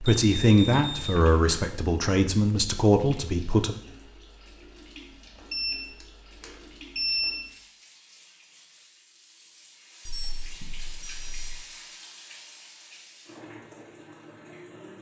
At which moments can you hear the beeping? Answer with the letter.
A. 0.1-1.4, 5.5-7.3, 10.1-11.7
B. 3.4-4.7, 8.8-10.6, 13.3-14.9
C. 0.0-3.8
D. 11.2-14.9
A.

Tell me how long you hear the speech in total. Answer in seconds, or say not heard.
4 s.